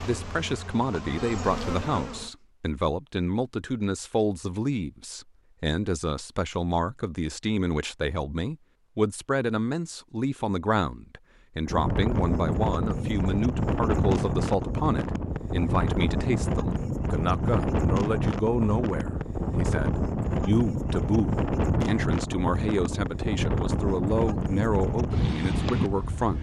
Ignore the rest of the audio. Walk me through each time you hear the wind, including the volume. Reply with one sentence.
You can hear the wind from 11.7 to 26.3 s, at a steady volume.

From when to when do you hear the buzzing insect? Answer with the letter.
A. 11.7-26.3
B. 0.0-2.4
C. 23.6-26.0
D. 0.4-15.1
B.